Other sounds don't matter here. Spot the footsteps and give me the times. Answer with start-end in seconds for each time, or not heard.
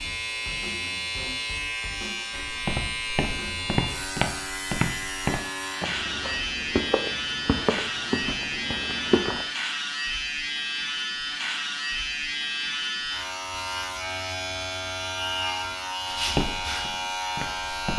2.4-9.4, 16.1-17.9.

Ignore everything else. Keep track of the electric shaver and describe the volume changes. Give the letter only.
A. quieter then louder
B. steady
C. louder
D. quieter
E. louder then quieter
B.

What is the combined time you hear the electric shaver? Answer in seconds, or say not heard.
18 s.